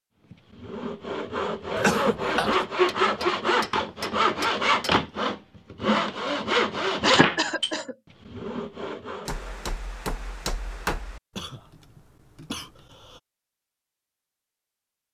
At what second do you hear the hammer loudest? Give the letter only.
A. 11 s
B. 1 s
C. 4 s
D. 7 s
A.